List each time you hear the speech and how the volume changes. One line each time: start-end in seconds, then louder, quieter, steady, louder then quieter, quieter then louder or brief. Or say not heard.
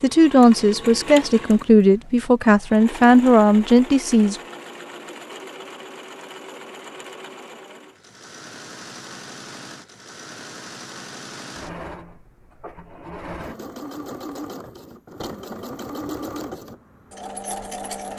0.0-4.4 steady.